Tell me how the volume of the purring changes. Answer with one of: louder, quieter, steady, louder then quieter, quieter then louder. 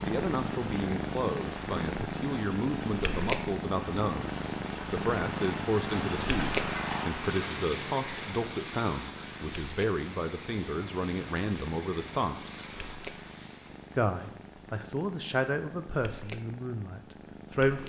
quieter.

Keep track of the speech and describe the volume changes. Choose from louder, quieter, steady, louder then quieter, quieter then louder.
steady.